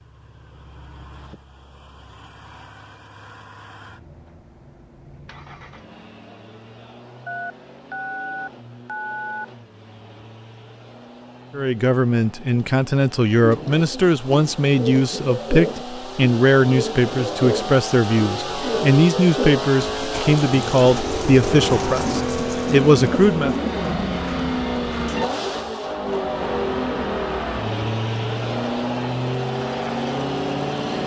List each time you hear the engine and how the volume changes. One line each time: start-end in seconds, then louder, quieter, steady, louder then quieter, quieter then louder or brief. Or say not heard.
0.0-31.0 louder.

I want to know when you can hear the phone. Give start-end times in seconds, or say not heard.
7.2-9.4, 23.8-25.2.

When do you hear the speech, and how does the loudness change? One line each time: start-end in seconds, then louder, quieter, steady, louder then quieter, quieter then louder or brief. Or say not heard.
11.6-23.6 steady.